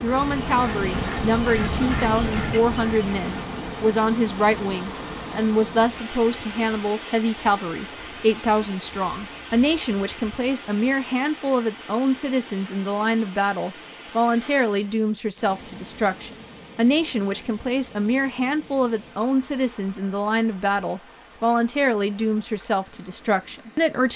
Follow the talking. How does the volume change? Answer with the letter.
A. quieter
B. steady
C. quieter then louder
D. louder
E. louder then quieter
B.